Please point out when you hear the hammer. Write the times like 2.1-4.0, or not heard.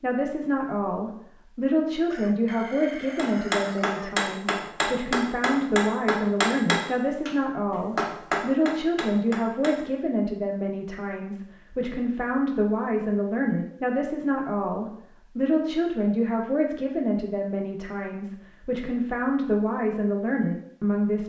3.1-9.8.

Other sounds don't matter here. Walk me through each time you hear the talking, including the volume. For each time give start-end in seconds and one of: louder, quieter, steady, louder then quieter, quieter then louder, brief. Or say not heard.
0.0-21.2 steady.